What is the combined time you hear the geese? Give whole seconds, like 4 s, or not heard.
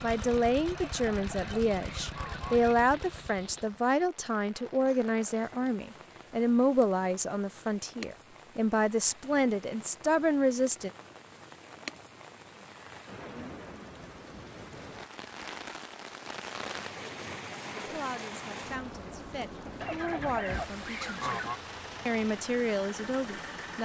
4 s.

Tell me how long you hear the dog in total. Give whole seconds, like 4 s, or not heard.
not heard.